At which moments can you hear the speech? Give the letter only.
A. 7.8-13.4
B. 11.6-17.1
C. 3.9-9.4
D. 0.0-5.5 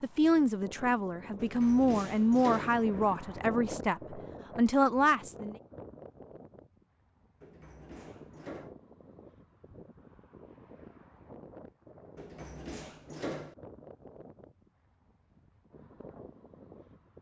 D.